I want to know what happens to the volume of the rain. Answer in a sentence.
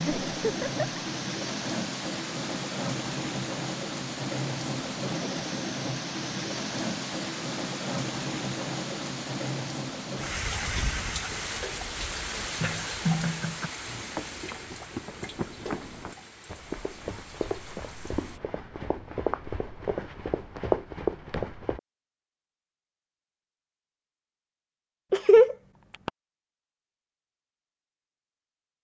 The loudness of the rain goes down.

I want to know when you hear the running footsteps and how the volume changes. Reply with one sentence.
You can hear the running footsteps from 13.8 to 21.8 s, getting louder.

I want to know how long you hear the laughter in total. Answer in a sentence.
The laughter can be heard for 3 seconds in total.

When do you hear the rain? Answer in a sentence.
The rain can be heard from 0.0 to 18.4 s.